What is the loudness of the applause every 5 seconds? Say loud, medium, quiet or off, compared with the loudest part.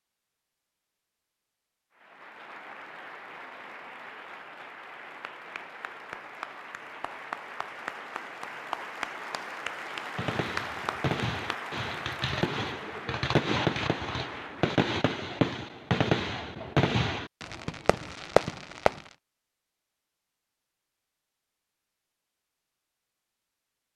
medium, loud, loud, off, off.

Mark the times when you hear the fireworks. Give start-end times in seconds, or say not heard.
10.2-19.1.